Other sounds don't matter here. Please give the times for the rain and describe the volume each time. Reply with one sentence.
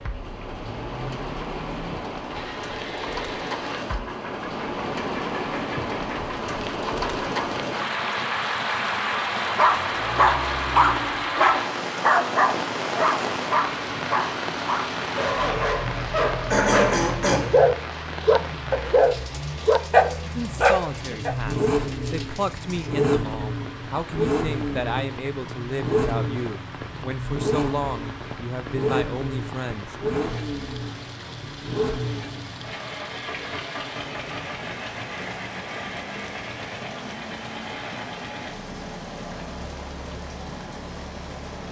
The rain can be heard from 0.0 to 41.6 s, getting quieter.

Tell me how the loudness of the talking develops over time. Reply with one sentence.
The loudness of the talking stays about the same.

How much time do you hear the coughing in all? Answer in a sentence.
The coughing can be heard for 2 seconds in total.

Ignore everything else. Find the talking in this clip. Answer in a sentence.
You can hear the talking from 20.4 to 29.9 s.